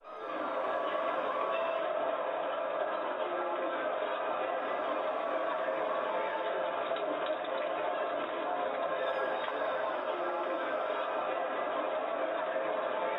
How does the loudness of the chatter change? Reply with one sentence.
The volume of the chatter stays about the same.